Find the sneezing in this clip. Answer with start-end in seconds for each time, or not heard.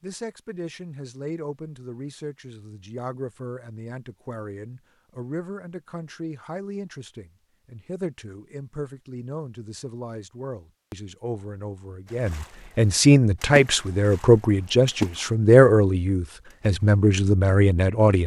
not heard.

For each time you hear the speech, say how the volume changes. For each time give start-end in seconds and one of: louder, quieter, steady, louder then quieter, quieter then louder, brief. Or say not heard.
0.0-18.2 louder.